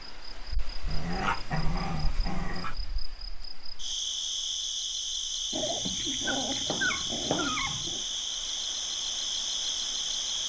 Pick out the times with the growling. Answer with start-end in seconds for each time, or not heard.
0.8-2.8, 5.5-8.1.